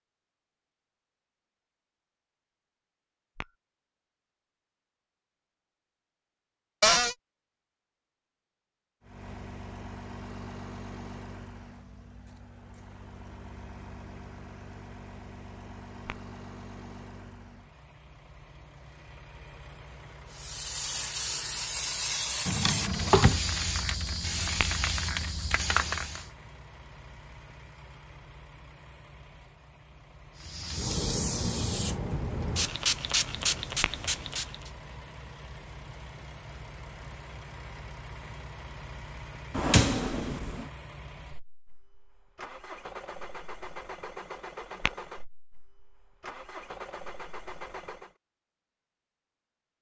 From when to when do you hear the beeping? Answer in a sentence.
You can't hear the beeping here.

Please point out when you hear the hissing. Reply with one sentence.
You can hear the hissing from 20.3 to 26.3 s and from 30.4 to 34.7 s.